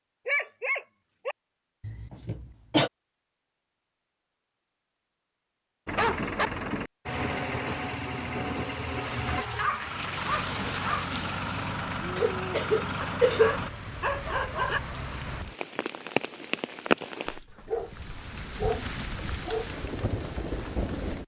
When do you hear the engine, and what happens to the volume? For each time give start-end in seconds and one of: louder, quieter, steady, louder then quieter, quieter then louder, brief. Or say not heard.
5.8-13.7 steady.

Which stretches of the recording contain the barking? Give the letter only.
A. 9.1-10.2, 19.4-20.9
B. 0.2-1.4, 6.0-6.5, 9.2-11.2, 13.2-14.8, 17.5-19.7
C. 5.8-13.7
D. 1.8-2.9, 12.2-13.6
B.